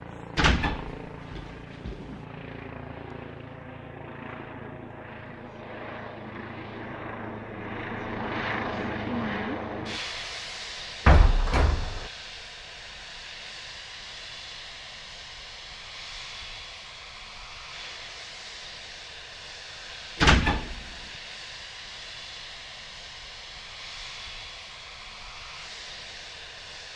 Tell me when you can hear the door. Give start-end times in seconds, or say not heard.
0.3-2.1, 11.1-12.1, 20.2-20.8.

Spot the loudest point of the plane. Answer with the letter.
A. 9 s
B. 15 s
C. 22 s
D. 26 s
A.